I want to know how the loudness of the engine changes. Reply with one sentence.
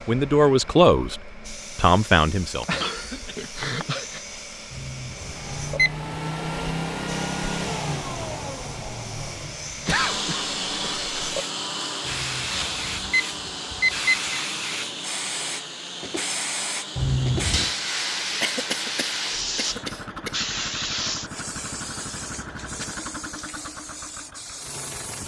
The volume of the engine goes down.